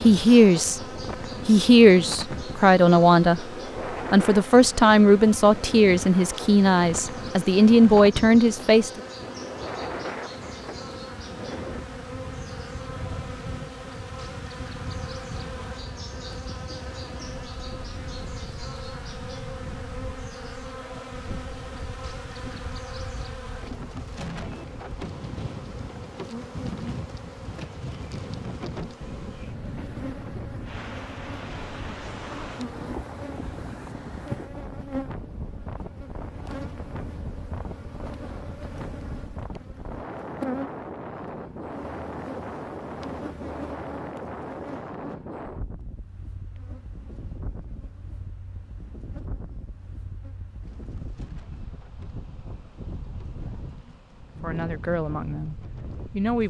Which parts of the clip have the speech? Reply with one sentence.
The speech can be heard from 0.0 to 0.8 s, from 1.4 to 3.5 s, from 4.1 to 9.0 s and from 54.4 to 56.4 s.